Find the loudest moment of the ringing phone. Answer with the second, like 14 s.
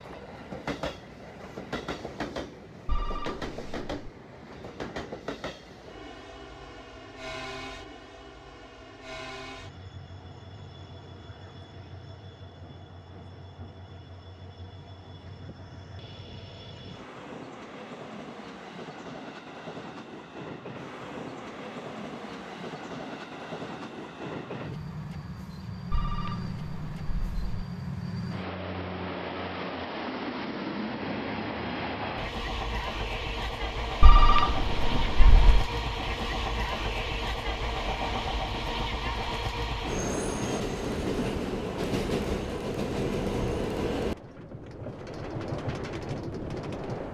34 s.